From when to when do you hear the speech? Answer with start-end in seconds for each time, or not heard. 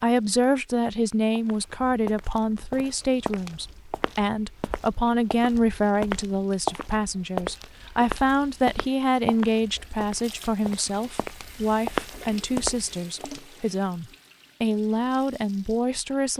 0.0-16.3.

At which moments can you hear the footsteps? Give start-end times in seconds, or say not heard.
1.4-13.4.